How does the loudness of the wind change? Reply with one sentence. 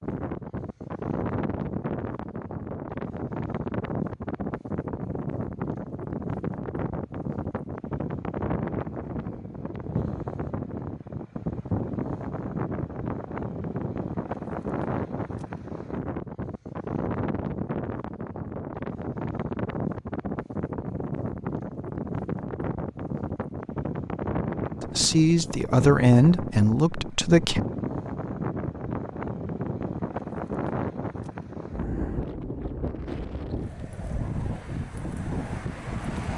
The loudness of the wind stays about the same.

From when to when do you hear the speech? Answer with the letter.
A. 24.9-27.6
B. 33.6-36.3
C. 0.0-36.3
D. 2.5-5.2
A.